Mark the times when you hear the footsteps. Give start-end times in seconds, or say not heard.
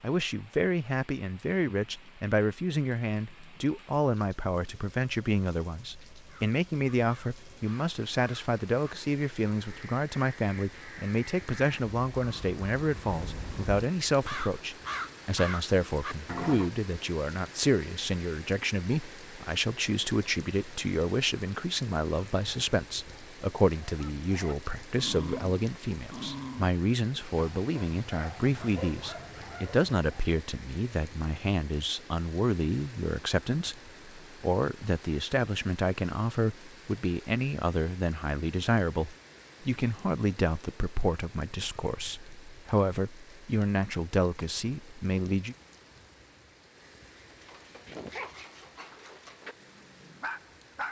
not heard.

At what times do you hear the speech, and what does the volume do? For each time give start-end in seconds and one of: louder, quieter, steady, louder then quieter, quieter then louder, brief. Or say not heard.
0.0-45.5 steady.